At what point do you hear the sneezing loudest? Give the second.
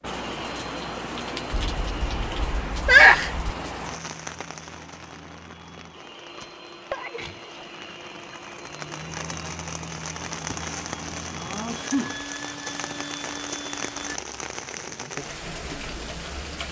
3 s.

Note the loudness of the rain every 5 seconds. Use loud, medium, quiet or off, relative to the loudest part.
loud, medium, loud, loud.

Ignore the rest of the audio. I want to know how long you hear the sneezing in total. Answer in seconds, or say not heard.
4 s.